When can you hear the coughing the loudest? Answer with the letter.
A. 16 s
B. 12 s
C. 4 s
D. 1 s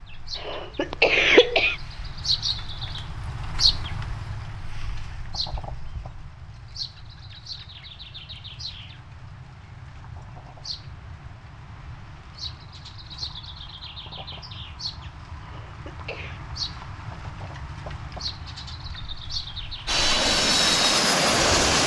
D.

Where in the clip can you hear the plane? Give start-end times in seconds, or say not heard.
19.9-21.8.